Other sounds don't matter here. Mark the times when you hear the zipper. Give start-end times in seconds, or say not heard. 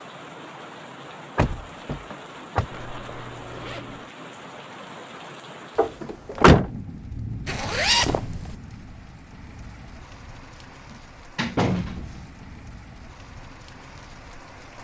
2.7-4.1, 7.5-8.6.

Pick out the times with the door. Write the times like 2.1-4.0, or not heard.
1.4-2.6, 5.8-6.7, 10.9-12.2.